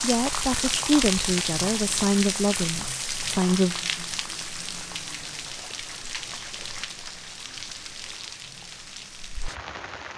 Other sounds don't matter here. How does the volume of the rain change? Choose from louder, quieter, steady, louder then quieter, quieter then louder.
quieter.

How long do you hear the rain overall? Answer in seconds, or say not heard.
10 s.